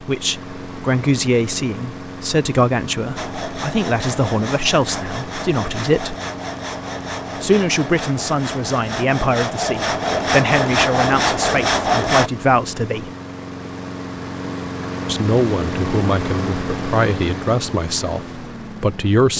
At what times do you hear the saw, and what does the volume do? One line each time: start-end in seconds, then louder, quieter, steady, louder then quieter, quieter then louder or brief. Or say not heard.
3.1-12.3 louder.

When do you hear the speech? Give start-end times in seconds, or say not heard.
0.0-6.2, 7.4-13.1, 15.1-19.3.